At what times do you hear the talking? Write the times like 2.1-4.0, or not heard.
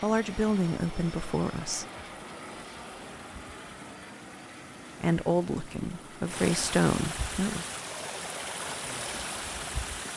0.0-1.9, 5.0-7.7.